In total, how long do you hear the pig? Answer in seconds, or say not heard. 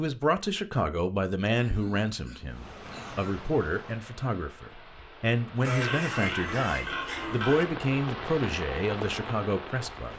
4 s.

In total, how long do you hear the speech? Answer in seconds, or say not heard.
10 s.